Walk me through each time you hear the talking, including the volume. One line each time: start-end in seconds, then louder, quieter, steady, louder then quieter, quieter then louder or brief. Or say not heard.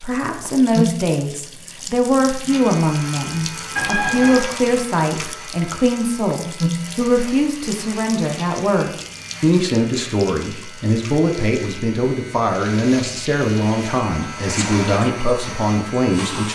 0.0-16.4 steady.